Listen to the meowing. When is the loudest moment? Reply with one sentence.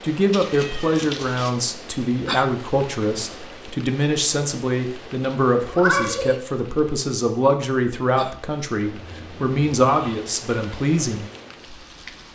The loudest moment of the meowing is at 6 seconds.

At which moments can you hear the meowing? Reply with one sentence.
The meowing can be heard from 0.3 to 1.6 s, from 5.6 to 6.4 s and from 8.8 to 10.2 s.